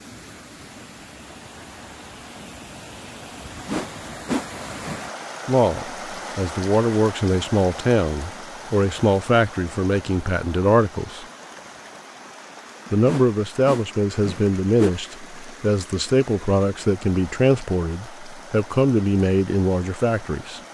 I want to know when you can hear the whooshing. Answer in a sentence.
You can hear the whooshing from 3.6 to 5.0 s and from 13.1 to 14.9 s.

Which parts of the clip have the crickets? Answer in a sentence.
You can't hear the crickets here.